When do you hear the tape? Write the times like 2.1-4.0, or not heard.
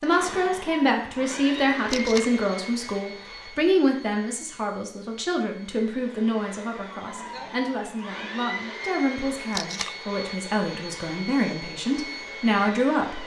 1.9-2.3, 9.5-9.9.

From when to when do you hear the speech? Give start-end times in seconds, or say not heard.
0.0-13.2.